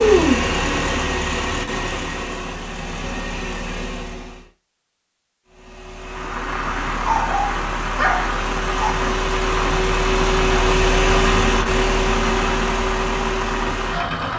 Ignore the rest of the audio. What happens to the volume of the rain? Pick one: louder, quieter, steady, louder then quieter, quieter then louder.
steady.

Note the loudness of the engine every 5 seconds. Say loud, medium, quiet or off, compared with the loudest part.
loud, medium, loud.